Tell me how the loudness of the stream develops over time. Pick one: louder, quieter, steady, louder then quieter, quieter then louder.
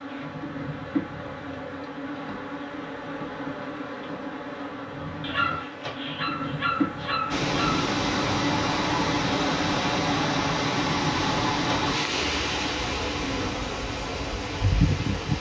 quieter.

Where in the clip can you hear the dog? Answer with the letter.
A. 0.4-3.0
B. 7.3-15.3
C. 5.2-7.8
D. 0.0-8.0
C.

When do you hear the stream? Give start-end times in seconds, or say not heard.
7.3-15.3.